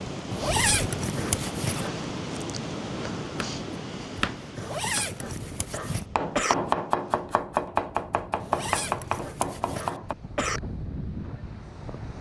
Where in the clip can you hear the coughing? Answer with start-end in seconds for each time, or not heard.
1.1-2.1, 4.5-6.5, 8.6-10.6.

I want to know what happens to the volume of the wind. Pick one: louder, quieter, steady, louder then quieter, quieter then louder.
quieter then louder.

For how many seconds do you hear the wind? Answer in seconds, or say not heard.
12 s.